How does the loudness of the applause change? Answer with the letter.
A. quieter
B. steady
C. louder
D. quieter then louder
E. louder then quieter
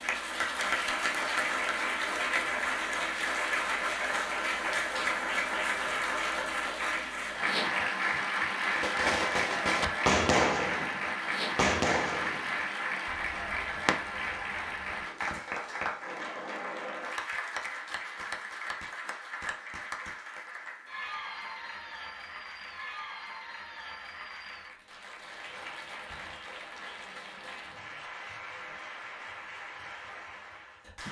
A.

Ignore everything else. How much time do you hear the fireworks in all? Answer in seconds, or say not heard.
7 s.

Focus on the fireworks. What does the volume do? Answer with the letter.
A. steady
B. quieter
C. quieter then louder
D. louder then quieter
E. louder
C.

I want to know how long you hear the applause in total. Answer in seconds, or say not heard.
31 s.